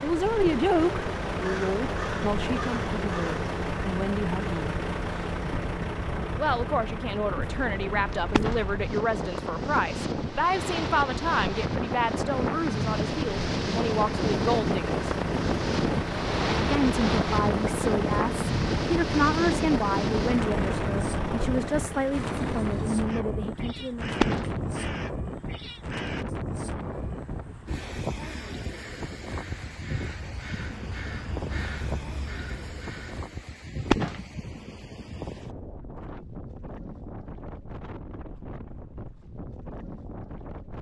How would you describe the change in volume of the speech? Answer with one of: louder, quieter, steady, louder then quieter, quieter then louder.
steady.